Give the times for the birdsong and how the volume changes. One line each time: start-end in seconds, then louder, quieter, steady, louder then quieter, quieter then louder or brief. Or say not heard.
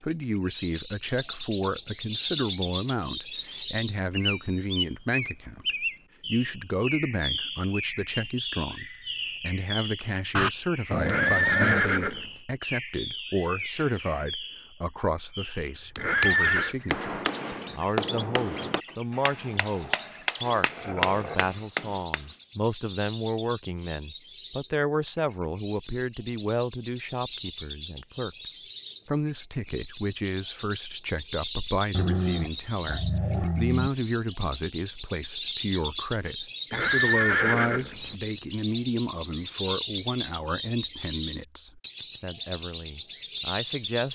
0.0-44.0 quieter then louder.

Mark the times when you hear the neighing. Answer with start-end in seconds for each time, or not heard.
11.0-12.3, 15.9-16.8, 36.7-38.1.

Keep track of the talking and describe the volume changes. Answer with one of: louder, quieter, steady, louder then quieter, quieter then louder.
steady.